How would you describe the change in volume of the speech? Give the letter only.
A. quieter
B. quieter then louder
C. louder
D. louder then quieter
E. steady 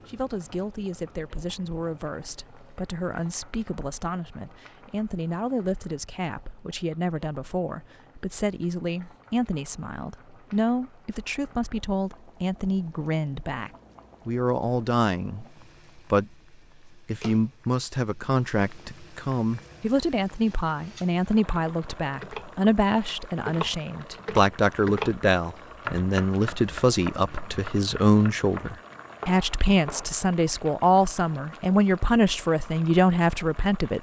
C.